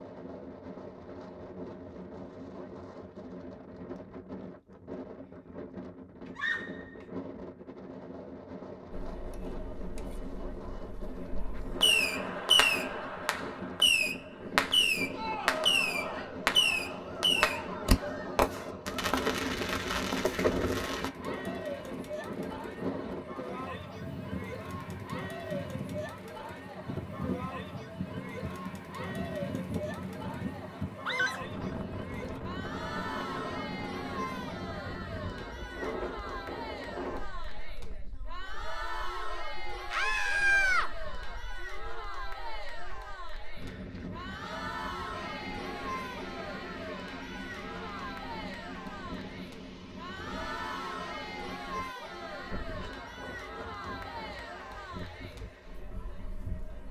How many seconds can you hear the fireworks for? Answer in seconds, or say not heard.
9 s.